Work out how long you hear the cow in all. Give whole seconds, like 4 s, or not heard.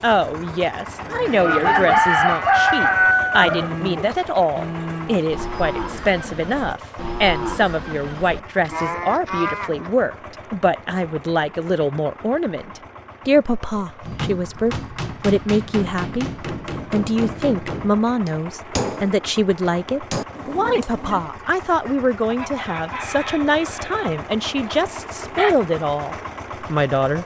9 s.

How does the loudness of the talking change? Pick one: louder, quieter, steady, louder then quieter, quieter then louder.
steady.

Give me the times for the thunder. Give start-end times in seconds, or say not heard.
not heard.